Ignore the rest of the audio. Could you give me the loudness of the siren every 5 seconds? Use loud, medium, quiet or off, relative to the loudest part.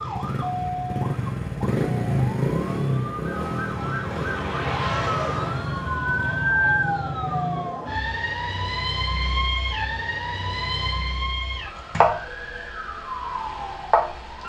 medium, loud, loud.